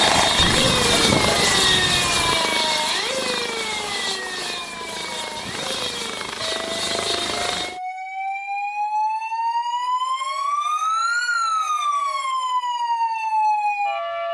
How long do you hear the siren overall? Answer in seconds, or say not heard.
14 s.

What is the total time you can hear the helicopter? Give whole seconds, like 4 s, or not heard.
8 s.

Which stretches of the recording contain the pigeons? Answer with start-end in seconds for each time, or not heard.
not heard.